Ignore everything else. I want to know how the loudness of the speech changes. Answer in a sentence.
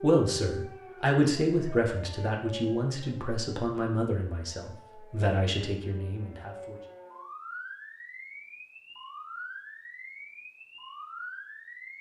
The loudness of the speech goes down.